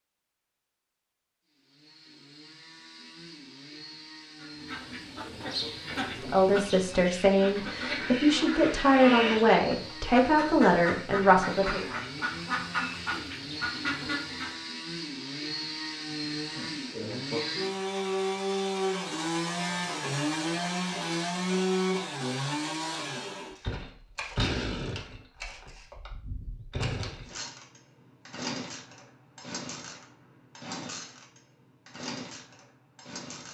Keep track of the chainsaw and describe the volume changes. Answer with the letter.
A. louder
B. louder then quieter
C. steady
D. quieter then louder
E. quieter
B.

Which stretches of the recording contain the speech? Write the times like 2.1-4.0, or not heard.
6.0-11.8.